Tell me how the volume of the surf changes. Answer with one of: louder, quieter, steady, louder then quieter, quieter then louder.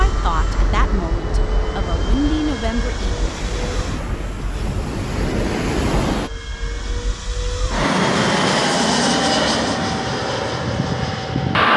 louder.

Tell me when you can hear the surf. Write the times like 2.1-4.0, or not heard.
0.0-6.3.